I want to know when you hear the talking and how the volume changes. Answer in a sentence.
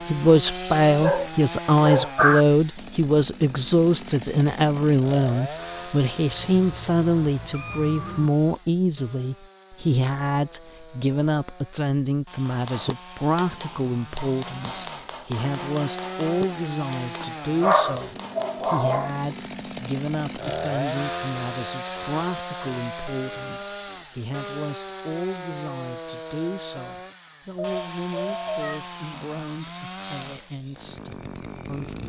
The talking can be heard from 0.1 to 32.0 s, getting quieter.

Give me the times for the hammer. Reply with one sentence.
You can hear the hammer from 12.4 to 18.9 s.